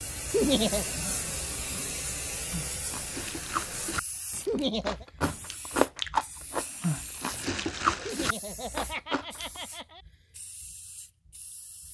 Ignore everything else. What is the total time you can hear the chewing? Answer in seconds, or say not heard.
7 s.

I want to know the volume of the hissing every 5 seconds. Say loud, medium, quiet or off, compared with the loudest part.
loud, medium, quiet.